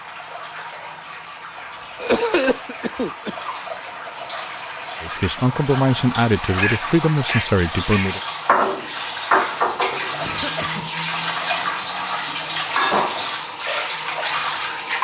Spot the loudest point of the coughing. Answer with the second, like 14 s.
2 s.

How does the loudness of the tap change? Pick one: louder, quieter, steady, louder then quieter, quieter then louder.
louder.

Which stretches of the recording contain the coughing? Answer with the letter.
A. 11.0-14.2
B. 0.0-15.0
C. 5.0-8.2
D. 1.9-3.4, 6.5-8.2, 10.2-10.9
D.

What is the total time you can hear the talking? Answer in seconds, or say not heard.
3 s.